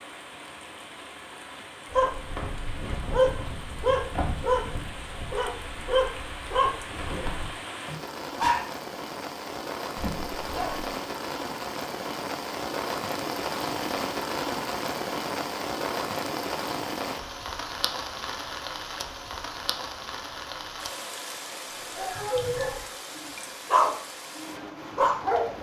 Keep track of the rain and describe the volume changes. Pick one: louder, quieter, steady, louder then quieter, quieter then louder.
louder then quieter.